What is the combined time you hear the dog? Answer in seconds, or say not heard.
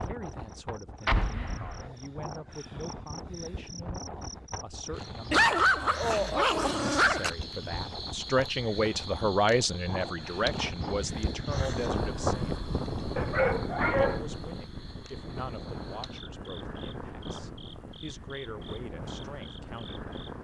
3 s.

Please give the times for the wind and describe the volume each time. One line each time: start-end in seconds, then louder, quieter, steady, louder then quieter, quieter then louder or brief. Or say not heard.
0.0-20.4 louder then quieter.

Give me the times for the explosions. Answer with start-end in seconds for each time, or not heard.
1.1-1.9.